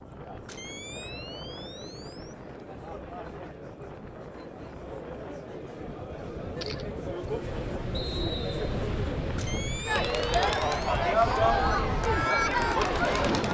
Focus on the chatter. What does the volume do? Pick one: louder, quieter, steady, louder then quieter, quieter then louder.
louder.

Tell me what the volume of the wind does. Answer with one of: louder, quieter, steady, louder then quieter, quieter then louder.
louder.